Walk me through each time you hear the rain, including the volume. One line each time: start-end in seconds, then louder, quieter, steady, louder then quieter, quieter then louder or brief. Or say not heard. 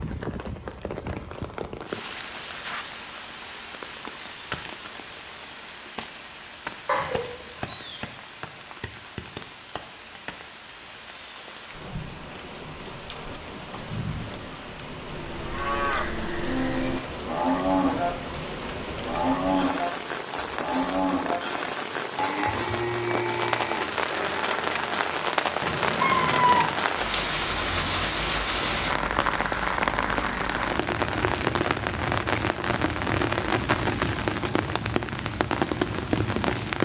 0.0-36.8 louder.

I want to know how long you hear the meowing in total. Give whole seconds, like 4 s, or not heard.
2 s.